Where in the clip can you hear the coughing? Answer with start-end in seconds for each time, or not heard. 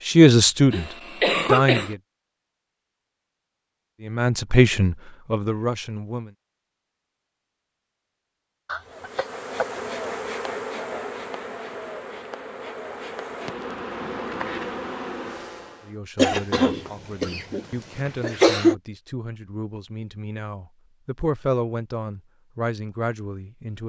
0.7-1.9, 8.7-9.7, 16.1-18.8.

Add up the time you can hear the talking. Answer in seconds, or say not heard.
12 s.